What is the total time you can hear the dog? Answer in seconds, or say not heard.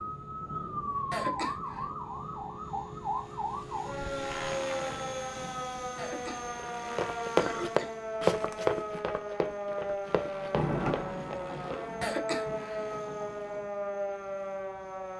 not heard.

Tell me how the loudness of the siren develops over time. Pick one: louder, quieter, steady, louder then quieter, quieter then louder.
steady.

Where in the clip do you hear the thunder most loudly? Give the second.
11 s.